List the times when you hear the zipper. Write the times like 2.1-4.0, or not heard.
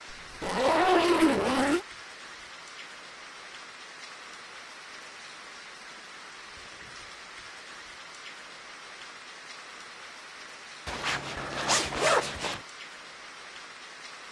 0.1-1.9, 10.8-12.6.